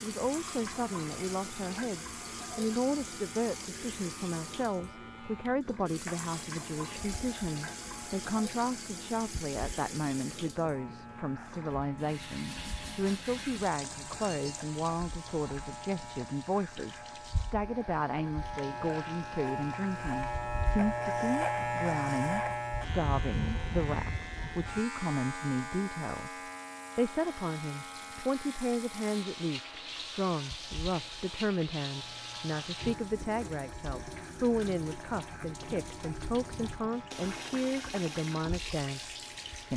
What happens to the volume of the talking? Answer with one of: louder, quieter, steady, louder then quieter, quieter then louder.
steady.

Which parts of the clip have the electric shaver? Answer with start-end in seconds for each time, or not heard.
0.0-39.7.